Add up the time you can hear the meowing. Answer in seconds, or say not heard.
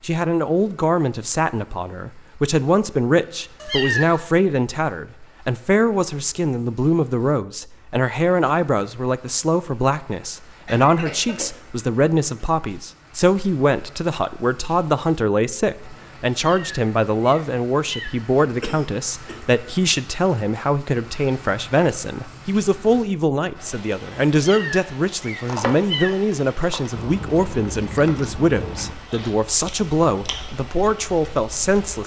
4 s.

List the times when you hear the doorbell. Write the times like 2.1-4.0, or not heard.
not heard.